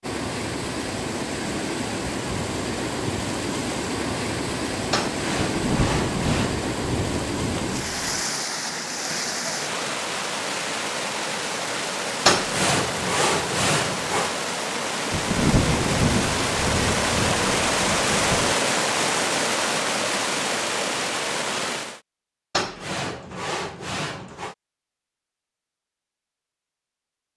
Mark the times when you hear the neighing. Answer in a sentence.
You can't hear the neighing here.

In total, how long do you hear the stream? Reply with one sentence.
The stream can be heard for 22 seconds in total.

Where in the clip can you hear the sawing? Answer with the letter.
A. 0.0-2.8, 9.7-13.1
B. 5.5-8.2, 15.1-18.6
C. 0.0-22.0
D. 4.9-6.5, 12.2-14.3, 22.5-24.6
D.